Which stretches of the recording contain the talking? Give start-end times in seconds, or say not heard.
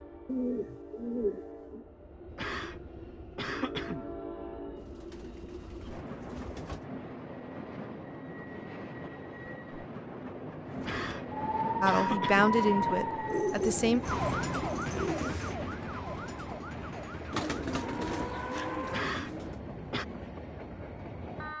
11.8-14.0.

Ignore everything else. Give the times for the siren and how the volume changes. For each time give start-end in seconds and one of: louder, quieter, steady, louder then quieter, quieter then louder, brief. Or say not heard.
11.4-19.1 quieter.